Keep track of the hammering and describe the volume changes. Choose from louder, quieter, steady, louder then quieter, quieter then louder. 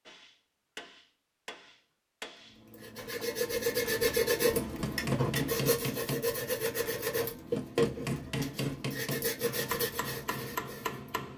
louder.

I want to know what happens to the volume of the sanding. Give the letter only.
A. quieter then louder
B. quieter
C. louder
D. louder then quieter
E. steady
B.